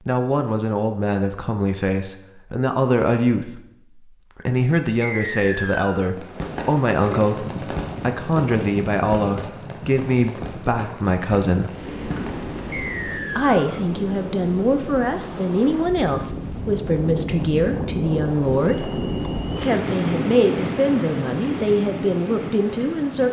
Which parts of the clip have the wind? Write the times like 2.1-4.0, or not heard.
7.2-23.2.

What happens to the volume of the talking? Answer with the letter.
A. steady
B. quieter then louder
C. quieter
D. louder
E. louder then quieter
A.